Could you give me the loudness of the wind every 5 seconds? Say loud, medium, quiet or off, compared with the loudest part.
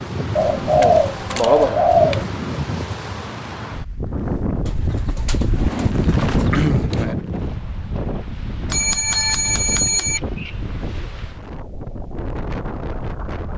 loud, loud, medium.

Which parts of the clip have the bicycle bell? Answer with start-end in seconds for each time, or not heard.
8.7-10.2.